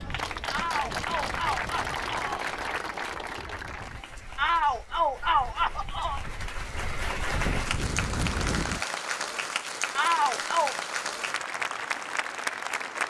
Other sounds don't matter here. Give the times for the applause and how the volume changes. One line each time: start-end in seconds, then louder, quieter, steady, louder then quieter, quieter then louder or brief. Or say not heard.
0.0-13.0 quieter then louder.